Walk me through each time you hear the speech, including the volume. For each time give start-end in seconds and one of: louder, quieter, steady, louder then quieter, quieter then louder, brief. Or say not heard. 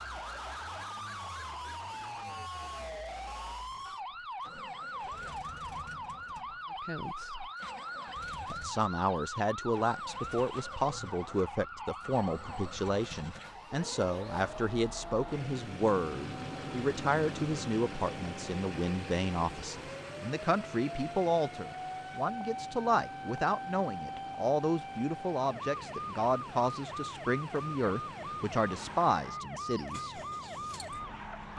6.8-7.5 brief
8.5-30.2 steady.